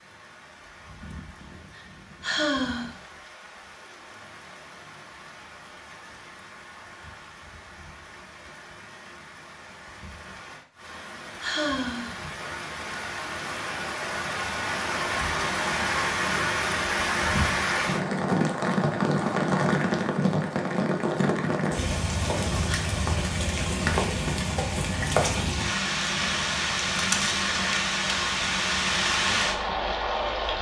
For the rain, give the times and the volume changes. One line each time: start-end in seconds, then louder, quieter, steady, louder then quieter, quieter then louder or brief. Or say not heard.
0.0-30.5 louder.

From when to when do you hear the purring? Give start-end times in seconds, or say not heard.
not heard.